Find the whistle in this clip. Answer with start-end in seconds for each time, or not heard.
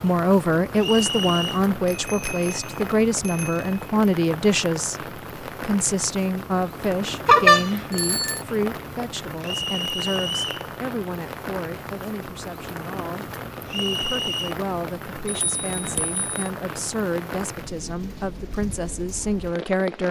0.8-1.6, 9.4-10.7, 13.7-14.6.